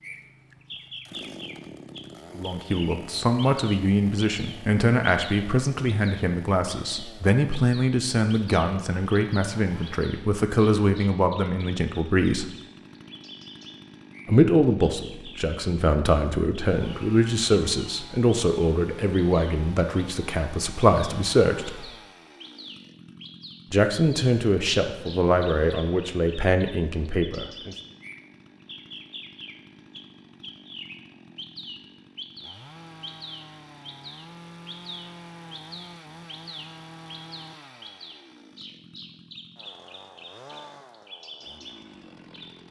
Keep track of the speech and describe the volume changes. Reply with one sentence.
The loudness of the speech stays about the same.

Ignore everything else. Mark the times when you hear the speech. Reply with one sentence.
The speech can be heard from 2.4 to 12.4 s, from 14.2 to 21.9 s and from 23.7 to 27.8 s.